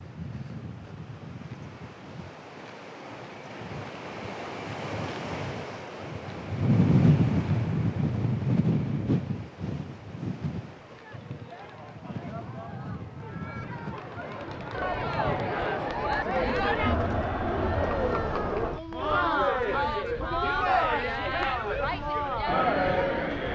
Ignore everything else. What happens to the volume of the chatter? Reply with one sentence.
The volume of the chatter goes up.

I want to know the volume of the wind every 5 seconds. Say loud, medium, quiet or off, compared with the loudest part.
quiet, loud, quiet, quiet, quiet.